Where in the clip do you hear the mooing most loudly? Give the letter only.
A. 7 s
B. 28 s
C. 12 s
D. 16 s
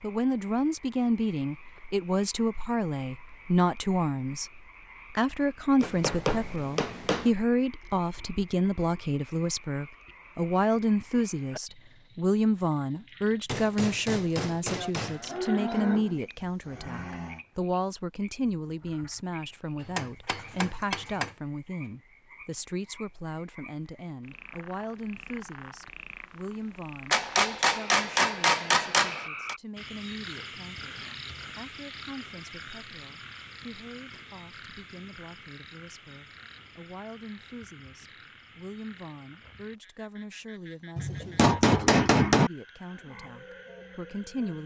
D.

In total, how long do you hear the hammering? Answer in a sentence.
The hammering can be heard for 9 seconds in total.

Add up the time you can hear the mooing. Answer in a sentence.
You can hear the mooing for 3 seconds altogether.